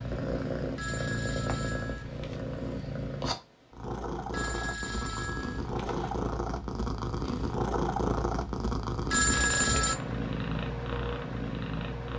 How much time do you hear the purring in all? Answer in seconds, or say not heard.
12 s.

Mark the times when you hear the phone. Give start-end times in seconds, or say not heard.
0.8-2.4, 4.3-6.3, 9.1-10.0.